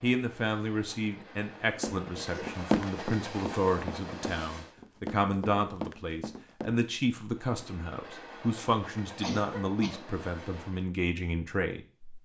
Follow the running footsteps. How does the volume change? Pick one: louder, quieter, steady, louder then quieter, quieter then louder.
quieter.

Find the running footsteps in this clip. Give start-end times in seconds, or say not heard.
1.8-6.8.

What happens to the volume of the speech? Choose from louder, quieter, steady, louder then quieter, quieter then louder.
steady.